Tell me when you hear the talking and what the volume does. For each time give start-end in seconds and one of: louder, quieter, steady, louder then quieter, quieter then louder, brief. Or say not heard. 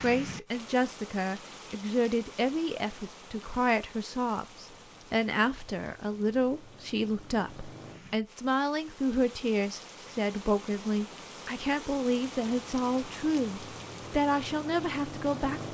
0.0-15.6 steady.